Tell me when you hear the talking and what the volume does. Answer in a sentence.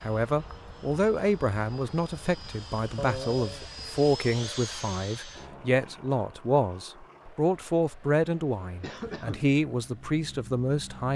You can hear the talking from 0.0 to 11.1 s, at a steady volume.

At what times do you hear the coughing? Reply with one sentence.
You can hear the coughing from 3.0 to 3.7 s and from 8.8 to 9.5 s.